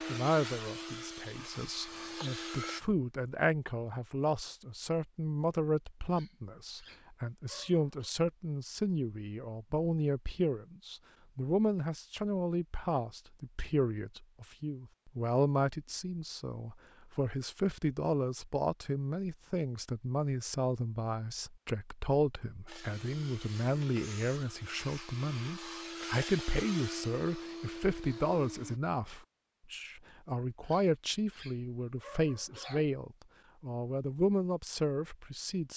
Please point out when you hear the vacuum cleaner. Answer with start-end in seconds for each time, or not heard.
0.0-2.8, 22.6-28.8.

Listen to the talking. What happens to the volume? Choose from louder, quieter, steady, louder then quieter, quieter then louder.
steady.